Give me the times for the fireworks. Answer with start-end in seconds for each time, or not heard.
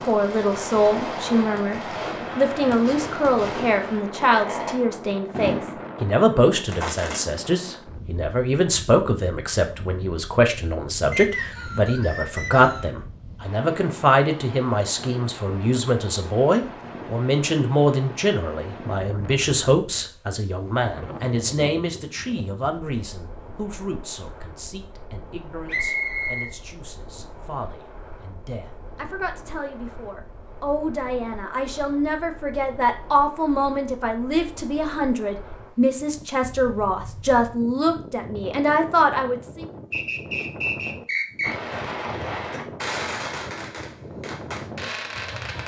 0.0-7.2, 41.4-45.6.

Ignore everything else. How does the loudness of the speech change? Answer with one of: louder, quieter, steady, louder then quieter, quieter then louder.
quieter then louder.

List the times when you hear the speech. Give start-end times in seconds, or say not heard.
0.0-39.6.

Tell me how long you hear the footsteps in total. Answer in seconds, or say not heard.
not heard.